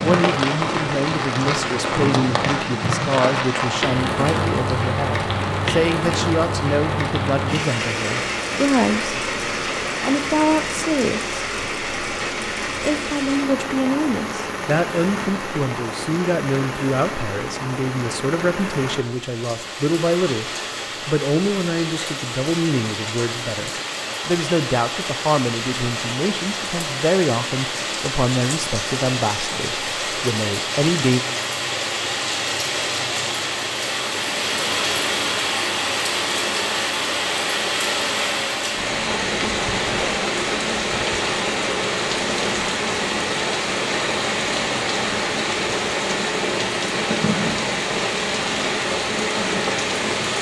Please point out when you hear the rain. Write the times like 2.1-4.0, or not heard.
0.0-50.3.